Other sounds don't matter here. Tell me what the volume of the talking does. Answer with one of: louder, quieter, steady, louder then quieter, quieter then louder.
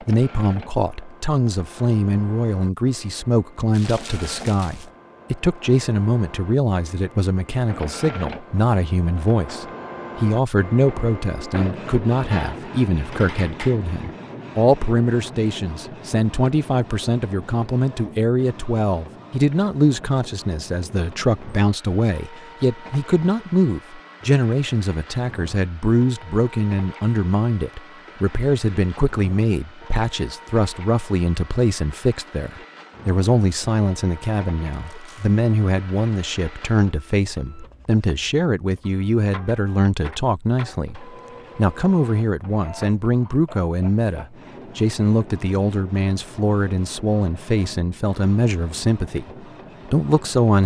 steady.